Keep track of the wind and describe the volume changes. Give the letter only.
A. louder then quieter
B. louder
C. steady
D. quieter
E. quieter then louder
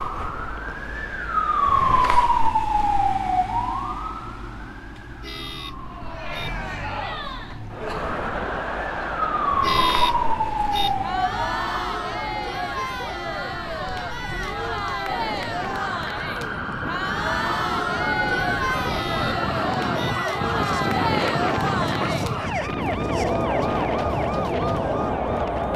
B.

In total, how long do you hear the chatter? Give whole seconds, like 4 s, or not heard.
20 s.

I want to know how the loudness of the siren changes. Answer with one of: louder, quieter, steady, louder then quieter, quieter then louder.
quieter.